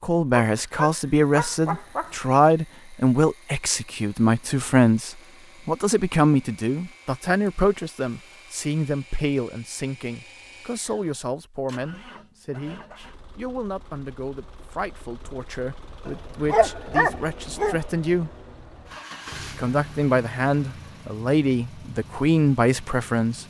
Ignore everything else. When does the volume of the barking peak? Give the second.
17 s.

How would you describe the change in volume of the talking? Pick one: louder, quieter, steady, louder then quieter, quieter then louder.
quieter then louder.